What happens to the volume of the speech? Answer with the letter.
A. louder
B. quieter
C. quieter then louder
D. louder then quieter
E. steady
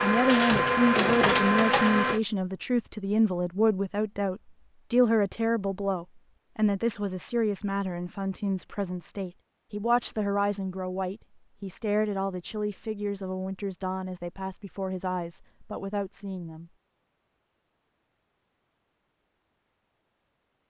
B.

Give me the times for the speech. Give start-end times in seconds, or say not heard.
0.0-16.7.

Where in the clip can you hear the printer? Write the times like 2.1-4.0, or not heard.
0.0-2.2.